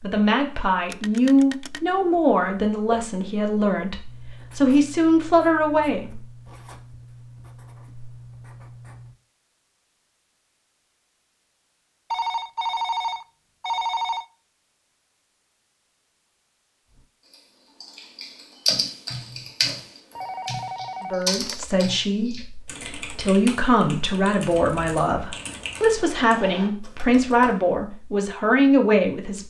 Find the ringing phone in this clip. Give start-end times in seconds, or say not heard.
0.9-1.8, 12.1-14.2, 20.1-21.6.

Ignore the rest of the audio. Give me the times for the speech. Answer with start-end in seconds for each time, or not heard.
0.0-6.1, 21.0-29.4.